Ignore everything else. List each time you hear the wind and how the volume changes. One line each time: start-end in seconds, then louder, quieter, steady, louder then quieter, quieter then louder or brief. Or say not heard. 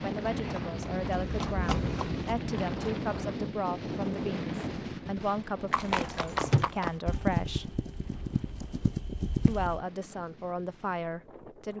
0.0-11.7 quieter.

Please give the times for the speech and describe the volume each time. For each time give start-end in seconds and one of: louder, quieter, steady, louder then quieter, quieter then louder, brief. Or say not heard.
0.0-7.7 steady
9.4-11.7 brief.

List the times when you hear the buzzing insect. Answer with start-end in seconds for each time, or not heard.
not heard.